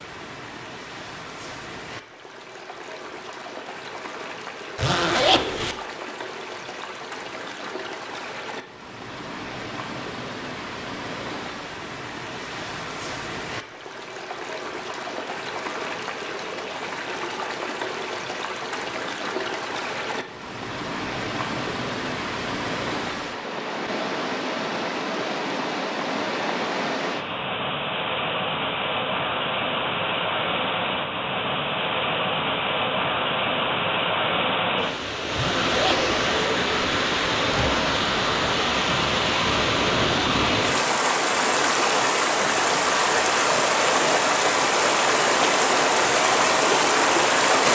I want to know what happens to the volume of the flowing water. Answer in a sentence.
The loudness of the flowing water goes up.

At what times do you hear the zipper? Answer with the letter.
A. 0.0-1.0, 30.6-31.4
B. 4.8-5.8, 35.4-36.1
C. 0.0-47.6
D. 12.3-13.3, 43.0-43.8
B.